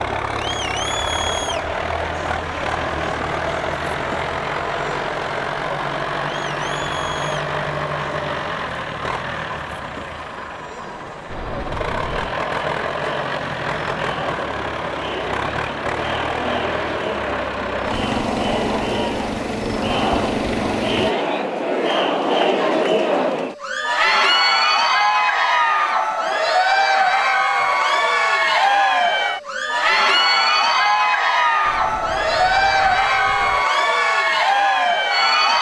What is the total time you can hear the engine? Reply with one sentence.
The engine can be heard for 21 seconds in total.